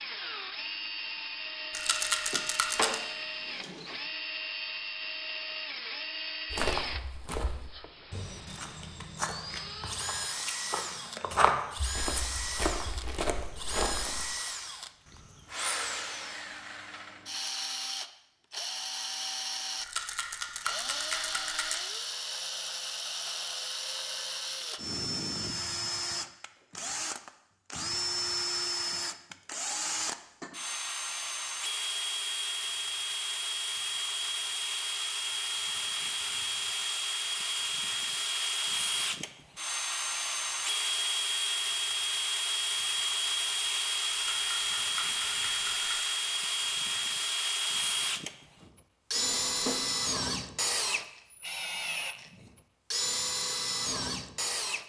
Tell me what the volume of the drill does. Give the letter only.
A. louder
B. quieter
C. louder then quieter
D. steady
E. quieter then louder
A.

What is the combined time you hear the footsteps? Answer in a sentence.
You can hear the footsteps for 8 seconds altogether.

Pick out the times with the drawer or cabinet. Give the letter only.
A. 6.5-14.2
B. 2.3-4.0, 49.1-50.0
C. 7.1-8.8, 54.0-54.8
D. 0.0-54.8
B.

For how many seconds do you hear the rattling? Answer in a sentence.
You can hear the rattling for 5 seconds altogether.